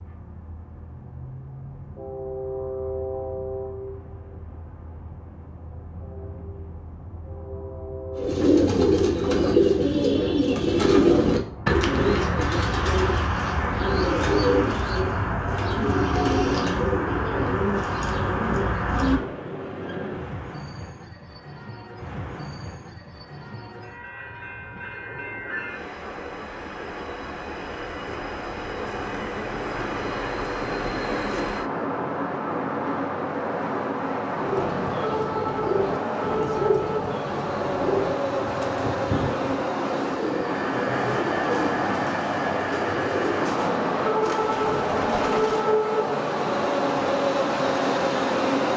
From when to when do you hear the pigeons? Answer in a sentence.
You can hear the pigeons from 8.2 to 19.2 s and from 34.4 to 45.7 s.